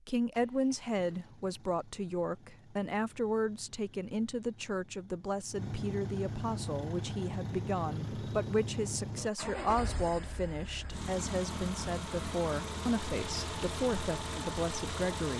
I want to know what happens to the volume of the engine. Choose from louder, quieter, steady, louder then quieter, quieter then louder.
louder.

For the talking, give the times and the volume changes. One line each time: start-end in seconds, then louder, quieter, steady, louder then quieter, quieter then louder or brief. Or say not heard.
0.1-15.3 steady.